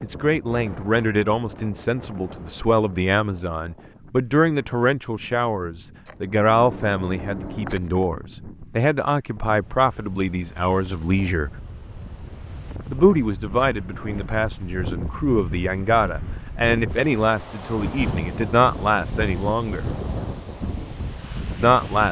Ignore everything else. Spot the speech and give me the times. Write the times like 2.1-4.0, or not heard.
0.0-11.5, 12.8-19.9, 21.6-22.0.